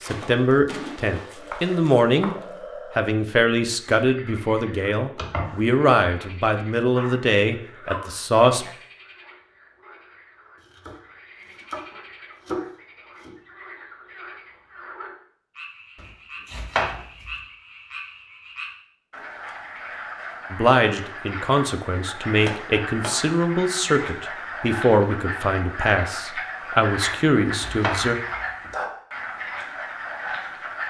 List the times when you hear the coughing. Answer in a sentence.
You can't hear the coughing here.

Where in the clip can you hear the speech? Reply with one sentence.
The speech can be heard from 0.0 to 2.4 s, from 3.0 to 8.7 s and from 20.5 to 28.1 s.